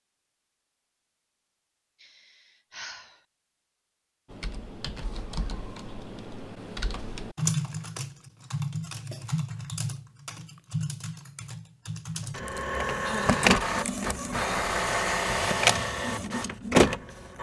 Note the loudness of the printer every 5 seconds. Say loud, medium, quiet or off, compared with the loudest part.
off, off, loud, loud.